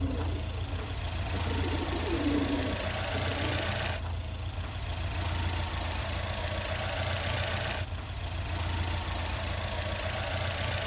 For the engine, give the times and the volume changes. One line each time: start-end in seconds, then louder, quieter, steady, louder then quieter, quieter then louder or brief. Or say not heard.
0.0-10.8 steady.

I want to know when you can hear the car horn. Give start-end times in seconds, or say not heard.
not heard.